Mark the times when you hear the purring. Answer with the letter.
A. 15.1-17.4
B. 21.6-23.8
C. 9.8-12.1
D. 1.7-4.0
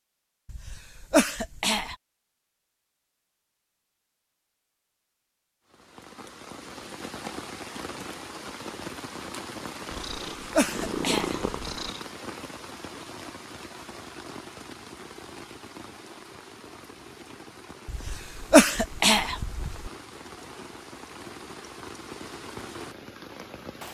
C.